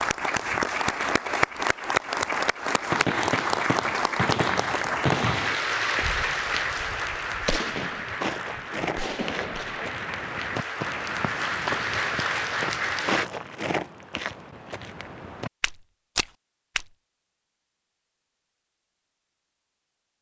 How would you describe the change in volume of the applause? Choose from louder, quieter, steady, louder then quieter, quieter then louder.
quieter then louder.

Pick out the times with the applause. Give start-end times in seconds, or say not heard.
0.0-13.2.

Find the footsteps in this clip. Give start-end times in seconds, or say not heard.
7.6-16.9.